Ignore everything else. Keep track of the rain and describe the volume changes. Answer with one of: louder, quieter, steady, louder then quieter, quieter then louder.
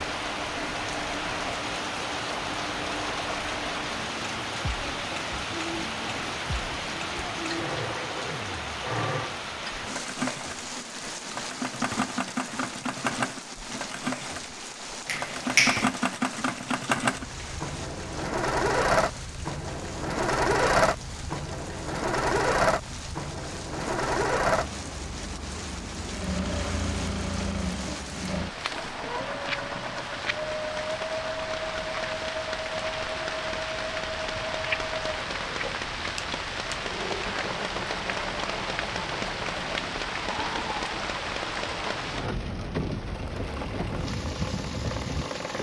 quieter then louder.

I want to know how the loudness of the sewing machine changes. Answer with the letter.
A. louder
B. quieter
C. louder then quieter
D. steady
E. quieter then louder
C.